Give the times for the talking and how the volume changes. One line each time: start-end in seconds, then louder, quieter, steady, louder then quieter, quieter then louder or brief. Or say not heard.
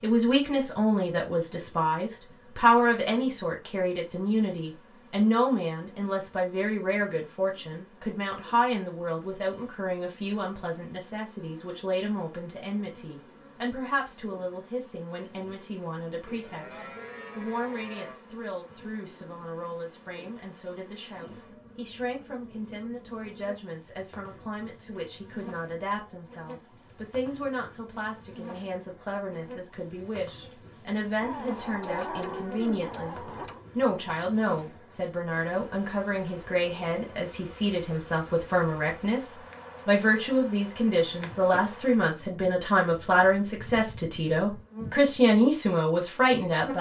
0.0-46.7 quieter then louder.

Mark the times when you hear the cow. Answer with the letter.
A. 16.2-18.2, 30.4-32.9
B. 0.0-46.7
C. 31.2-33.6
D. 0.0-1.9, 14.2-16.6
A.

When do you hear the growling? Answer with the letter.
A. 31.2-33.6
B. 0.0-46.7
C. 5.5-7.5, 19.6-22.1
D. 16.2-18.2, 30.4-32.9
A.